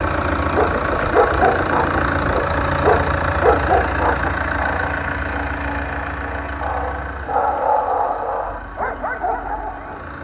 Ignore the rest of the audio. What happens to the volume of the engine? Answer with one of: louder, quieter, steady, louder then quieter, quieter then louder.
quieter.